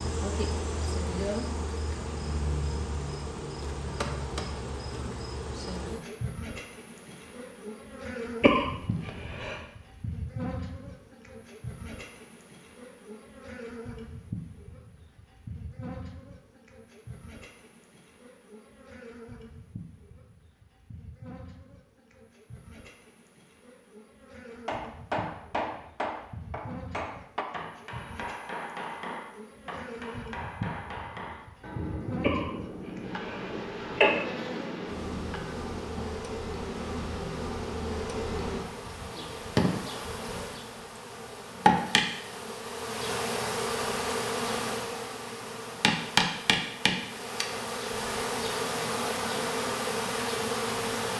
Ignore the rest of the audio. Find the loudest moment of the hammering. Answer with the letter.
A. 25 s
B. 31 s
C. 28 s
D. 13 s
A.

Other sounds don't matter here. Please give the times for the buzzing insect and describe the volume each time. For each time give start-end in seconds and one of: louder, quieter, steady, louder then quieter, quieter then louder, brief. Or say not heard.
0.0-51.1 quieter then louder.